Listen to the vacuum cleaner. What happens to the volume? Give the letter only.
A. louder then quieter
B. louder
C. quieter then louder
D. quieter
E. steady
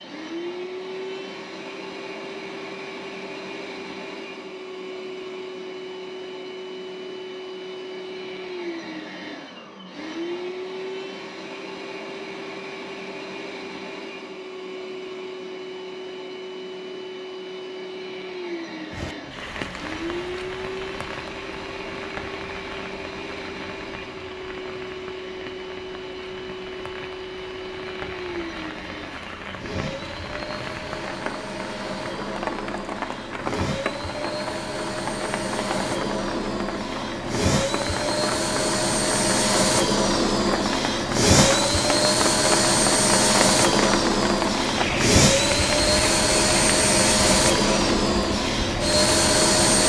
B.